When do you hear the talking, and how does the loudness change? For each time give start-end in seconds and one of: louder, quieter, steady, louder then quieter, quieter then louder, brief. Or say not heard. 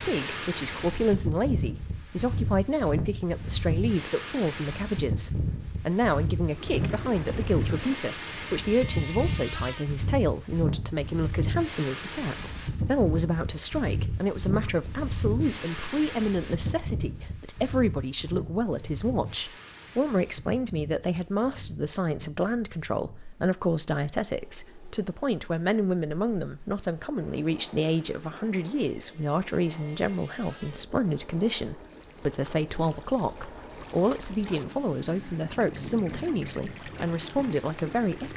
0.0-38.3 steady.